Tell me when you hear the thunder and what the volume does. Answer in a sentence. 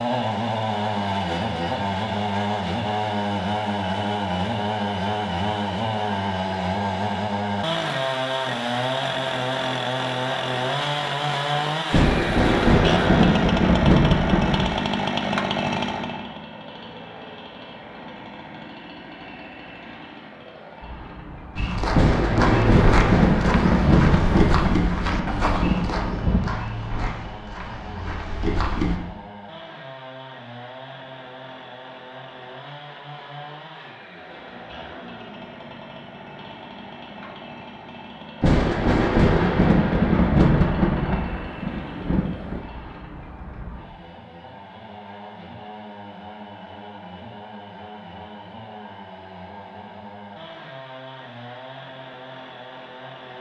You can hear the thunder briefly from 11.9 to 14.8 s; from 21.9 to 26.4 s, getting quieter; and from 38.4 to 42.6 s, getting quieter.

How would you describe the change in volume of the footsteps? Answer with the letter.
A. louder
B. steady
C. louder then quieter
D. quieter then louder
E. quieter
E.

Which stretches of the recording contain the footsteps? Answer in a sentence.
The footsteps can be heard from 21.6 to 29.0 s.